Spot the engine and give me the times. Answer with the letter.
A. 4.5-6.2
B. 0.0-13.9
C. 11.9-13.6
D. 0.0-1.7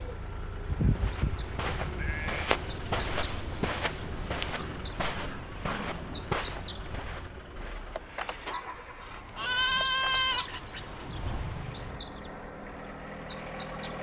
B.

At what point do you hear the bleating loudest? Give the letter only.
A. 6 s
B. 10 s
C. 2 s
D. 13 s
B.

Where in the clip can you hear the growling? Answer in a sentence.
You can hear the growling from 4.5 to 6.2 s.